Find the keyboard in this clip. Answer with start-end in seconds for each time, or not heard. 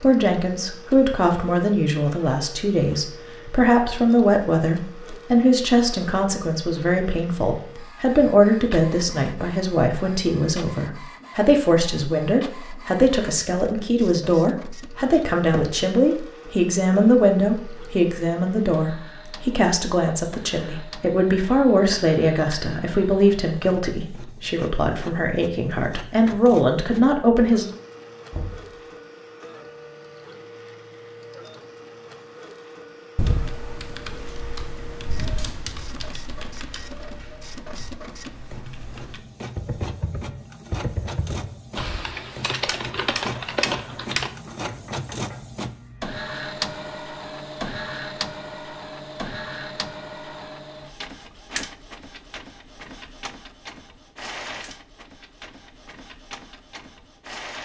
33.1-44.3.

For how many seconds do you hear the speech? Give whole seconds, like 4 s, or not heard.
28 s.